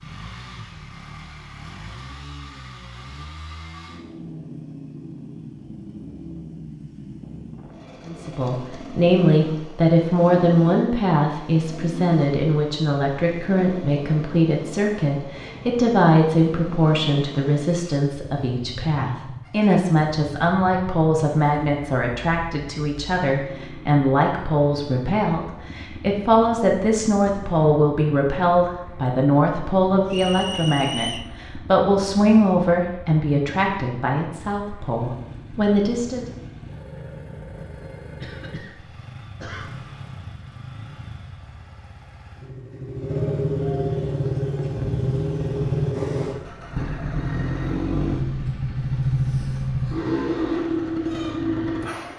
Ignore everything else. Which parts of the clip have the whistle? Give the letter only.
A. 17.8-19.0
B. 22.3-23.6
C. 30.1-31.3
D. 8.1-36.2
C.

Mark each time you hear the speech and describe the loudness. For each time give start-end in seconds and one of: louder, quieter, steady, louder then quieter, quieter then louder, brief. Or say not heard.
8.1-36.2 steady.